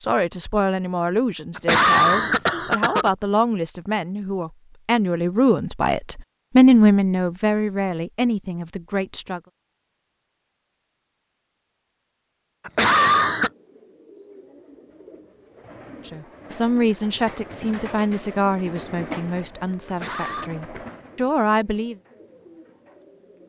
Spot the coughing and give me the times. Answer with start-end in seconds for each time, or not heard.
1.6-3.1, 12.7-13.5, 19.9-20.5.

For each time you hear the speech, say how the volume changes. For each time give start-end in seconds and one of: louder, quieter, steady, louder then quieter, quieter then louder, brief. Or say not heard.
0.0-9.4 louder then quieter
16.1-21.9 quieter then louder.